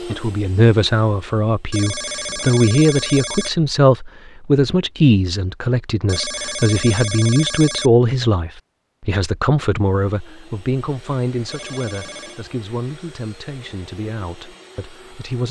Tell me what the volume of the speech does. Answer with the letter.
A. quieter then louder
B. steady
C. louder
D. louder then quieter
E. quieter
E.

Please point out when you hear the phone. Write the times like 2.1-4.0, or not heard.
1.7-3.5, 6.0-7.9, 11.4-12.4.